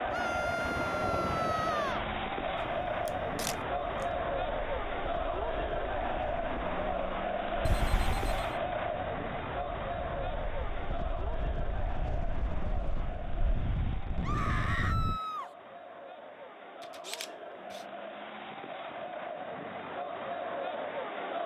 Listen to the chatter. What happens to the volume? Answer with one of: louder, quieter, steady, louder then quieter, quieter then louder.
quieter then louder.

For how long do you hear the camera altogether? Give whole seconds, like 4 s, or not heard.
3 s.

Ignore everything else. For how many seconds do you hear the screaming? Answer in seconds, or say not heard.
3 s.